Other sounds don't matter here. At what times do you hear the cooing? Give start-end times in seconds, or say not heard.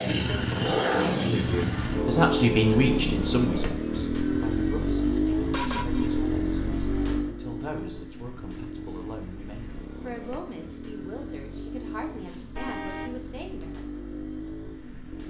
not heard.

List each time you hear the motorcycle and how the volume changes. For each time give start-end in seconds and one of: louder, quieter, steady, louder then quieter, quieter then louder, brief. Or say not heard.
0.0-15.2 quieter.